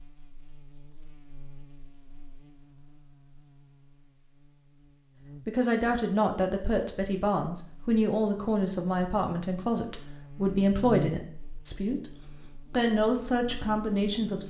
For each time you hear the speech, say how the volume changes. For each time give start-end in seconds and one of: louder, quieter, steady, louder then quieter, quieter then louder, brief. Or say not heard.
5.5-14.4 steady.